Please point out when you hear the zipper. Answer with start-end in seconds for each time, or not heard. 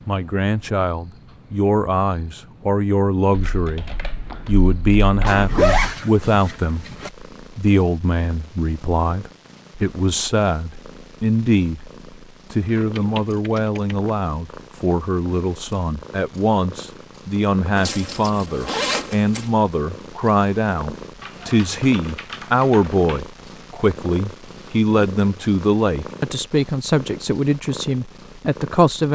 5.2-7.1, 17.8-19.5.